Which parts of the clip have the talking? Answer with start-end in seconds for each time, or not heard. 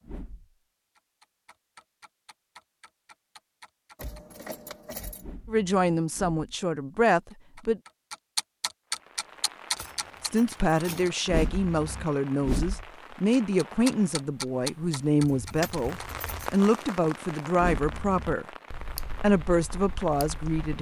5.5-7.8, 10.2-18.4, 19.2-20.7.